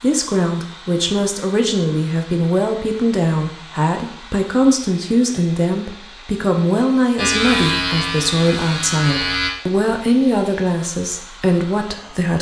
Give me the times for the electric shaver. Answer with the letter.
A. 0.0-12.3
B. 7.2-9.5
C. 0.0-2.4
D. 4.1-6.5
B.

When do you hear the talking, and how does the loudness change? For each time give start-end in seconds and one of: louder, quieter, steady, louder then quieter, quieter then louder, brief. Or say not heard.
0.0-12.3 steady.